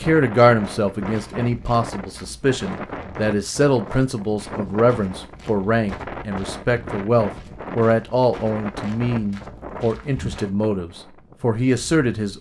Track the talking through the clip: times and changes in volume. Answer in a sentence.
You can hear the talking from 0.0 to 12.3 s, at a steady volume.